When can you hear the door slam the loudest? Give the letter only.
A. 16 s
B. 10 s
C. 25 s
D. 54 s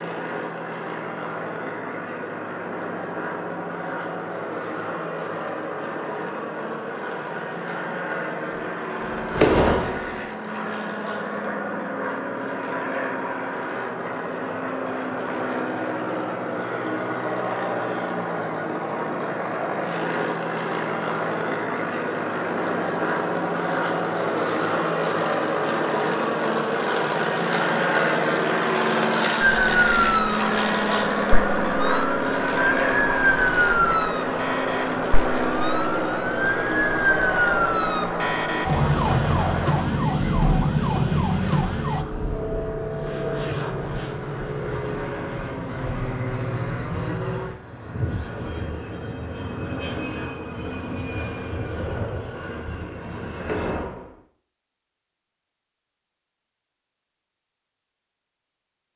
B.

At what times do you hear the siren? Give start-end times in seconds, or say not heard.
29.4-42.0.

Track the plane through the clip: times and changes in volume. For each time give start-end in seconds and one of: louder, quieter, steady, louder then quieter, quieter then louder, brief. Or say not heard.
0.0-53.8 louder then quieter.